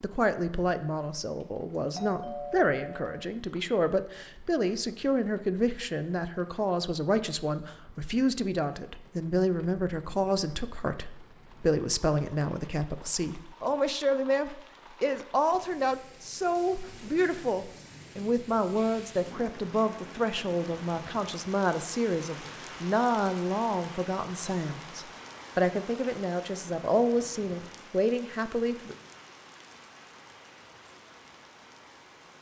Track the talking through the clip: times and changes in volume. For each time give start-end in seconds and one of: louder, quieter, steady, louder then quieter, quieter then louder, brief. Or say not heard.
0.0-28.9 steady.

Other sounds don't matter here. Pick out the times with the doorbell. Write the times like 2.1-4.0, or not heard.
1.9-3.2.